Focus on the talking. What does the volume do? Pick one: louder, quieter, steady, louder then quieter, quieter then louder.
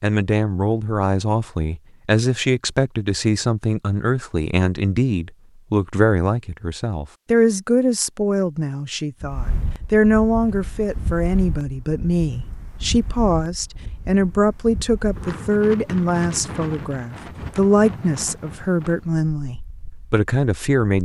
steady.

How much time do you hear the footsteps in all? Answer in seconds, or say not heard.
not heard.